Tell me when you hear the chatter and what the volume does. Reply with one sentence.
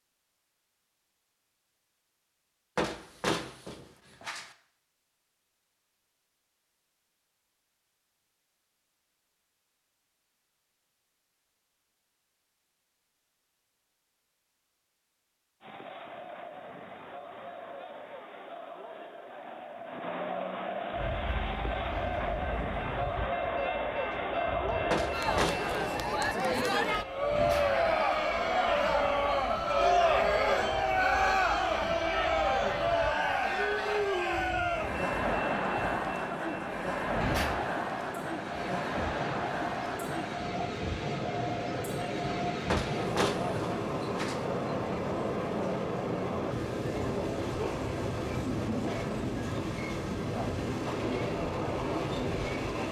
The chatter can be heard from 15.6 to 52.8 s, getting louder then quieter.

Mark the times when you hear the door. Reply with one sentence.
The door can be heard from 2.8 to 4.5 s, from 24.9 to 25.8 s and from 42.7 to 44.5 s.